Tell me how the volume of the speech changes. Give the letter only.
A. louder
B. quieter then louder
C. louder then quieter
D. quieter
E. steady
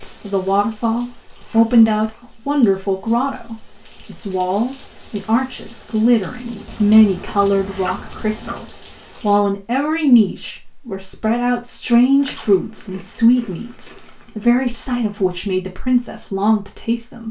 E.